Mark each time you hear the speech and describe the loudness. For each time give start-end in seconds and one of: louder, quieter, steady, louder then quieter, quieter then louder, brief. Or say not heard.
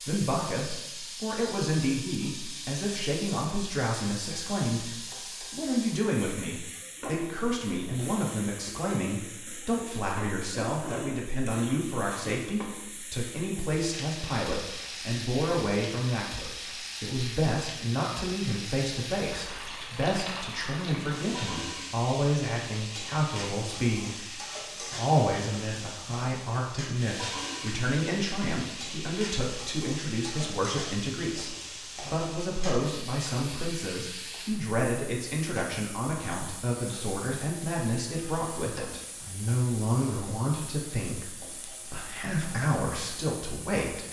0.0-44.0 steady.